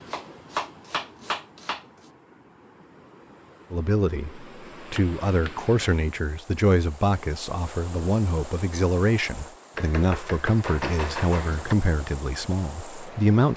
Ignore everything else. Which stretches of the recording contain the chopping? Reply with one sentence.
The chopping can be heard from 0.1 to 1.9 s, from 5.0 to 5.5 s and from 9.8 to 11.8 s.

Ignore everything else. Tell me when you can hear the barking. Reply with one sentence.
The barking can't be heard in this clip.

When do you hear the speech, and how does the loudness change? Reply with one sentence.
The speech can be heard from 3.7 to 13.5 s, at a steady volume.